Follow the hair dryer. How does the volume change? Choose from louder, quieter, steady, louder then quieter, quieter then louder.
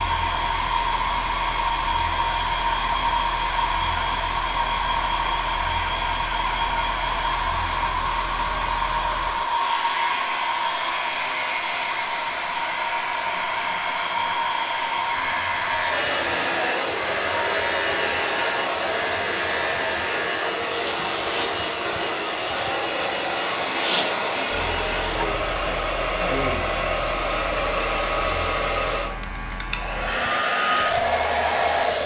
steady.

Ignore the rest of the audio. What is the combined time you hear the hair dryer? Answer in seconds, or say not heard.
32 s.